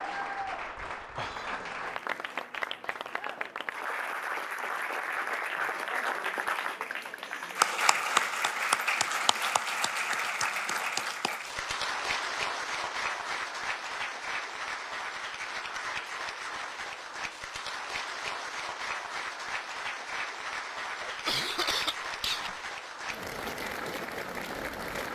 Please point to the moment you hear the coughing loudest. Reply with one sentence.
The loudest moment of the coughing is at 22 seconds.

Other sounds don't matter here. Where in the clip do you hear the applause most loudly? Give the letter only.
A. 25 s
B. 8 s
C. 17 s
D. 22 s
B.